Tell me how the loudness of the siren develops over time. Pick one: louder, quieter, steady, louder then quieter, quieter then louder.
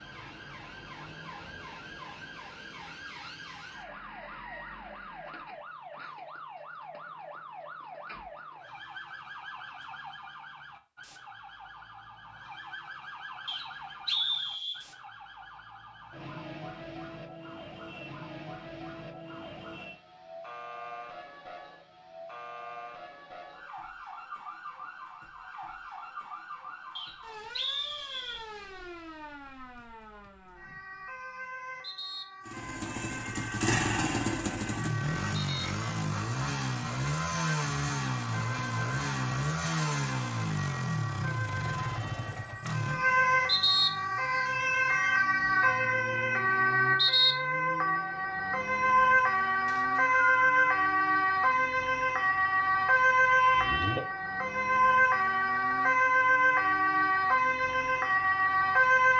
louder.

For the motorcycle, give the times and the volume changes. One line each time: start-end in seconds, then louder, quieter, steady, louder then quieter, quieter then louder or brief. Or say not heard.
32.5-45.2 quieter.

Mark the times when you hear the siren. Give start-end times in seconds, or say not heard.
0.0-59.1.